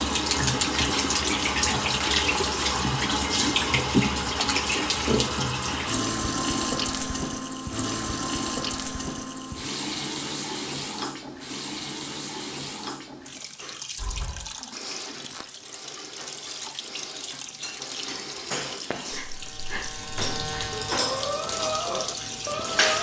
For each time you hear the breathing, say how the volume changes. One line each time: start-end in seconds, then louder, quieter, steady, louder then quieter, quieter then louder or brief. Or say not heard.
13.6-22.9 louder.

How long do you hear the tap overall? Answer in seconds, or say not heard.
23 s.